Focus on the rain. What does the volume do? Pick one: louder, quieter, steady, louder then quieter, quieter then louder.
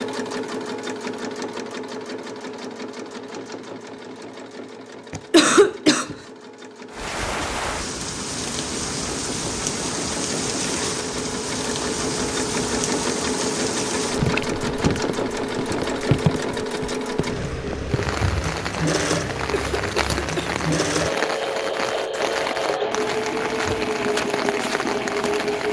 steady.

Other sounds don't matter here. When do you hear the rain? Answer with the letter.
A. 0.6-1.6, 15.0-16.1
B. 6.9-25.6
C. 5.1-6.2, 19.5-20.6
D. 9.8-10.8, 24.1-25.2
B.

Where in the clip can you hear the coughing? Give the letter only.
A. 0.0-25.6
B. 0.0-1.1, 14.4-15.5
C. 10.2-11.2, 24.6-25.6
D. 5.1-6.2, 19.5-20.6
D.